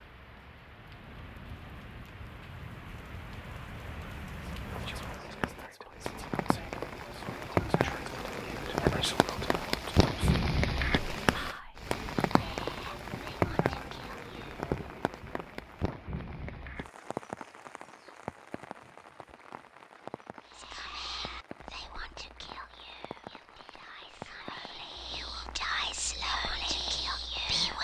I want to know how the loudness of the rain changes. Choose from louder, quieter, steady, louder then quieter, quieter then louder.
louder then quieter.